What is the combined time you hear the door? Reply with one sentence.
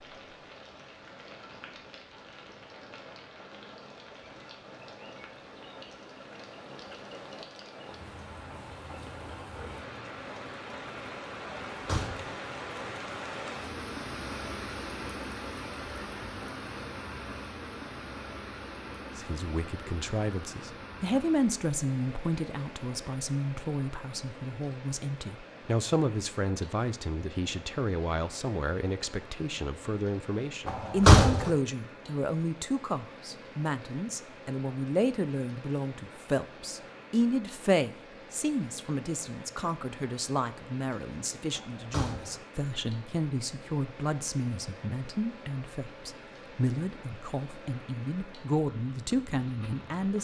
The door can be heard for 2 seconds in total.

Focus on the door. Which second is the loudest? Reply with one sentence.
The volume of the door peaks at 31 seconds.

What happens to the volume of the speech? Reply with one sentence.
The loudness of the speech stays about the same.